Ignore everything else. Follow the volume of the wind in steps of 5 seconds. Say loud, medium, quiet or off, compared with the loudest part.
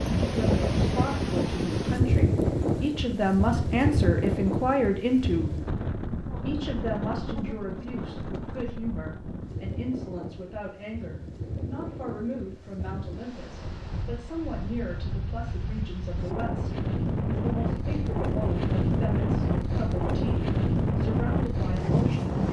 loud, medium, quiet, loud, loud.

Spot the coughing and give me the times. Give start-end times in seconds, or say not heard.
not heard.